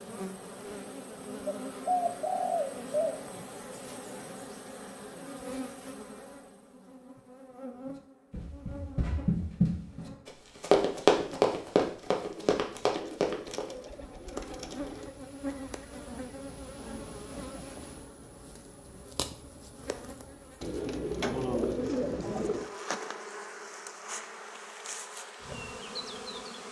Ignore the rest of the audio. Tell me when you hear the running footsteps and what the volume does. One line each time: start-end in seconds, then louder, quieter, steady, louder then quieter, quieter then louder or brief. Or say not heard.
7.8-13.7 louder then quieter.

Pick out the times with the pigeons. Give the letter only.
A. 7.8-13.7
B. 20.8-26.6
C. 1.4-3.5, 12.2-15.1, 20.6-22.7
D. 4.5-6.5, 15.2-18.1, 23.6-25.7
C.